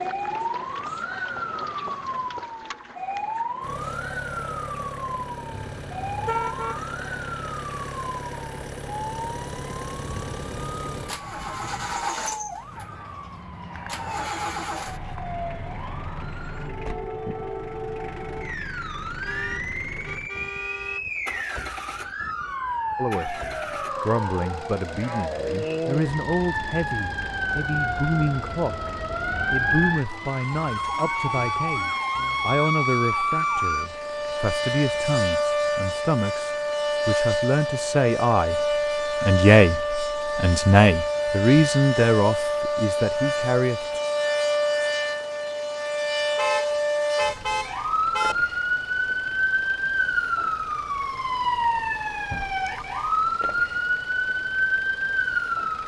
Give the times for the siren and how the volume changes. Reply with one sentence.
The siren can be heard from 0.0 to 55.8 s, getting louder.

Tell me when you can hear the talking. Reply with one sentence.
The talking can be heard from 22.9 to 23.4 s, from 24.0 to 28.9 s and from 29.5 to 44.0 s.